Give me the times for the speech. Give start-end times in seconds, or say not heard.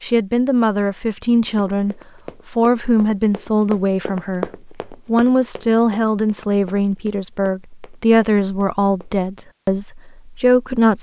0.0-10.9.